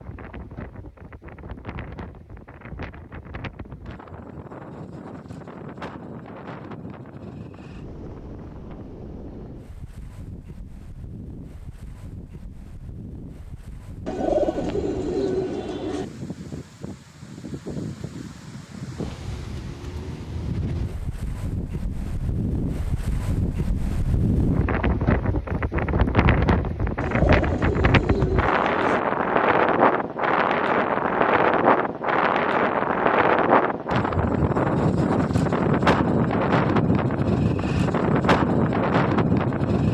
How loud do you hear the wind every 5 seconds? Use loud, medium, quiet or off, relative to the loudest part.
quiet, quiet, quiet, quiet, medium, loud, loud, loud.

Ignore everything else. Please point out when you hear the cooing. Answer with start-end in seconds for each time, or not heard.
14.1-16.1, 27.0-29.0.